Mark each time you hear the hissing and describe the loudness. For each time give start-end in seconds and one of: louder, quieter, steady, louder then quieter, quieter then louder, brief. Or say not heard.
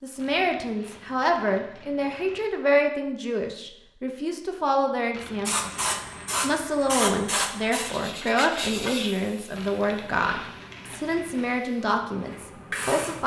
5.5-13.2 quieter then louder.